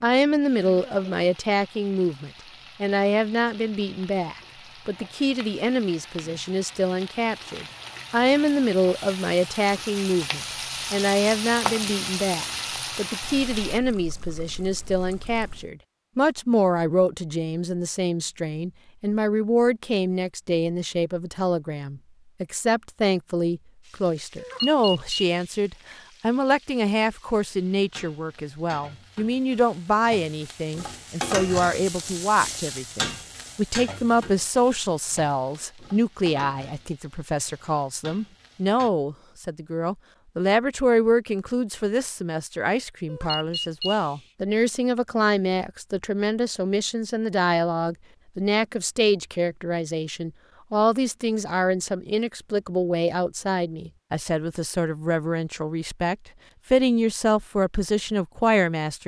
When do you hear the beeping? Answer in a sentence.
The beeping can be heard from 24.4 to 25.5 s and from 43.0 to 44.2 s.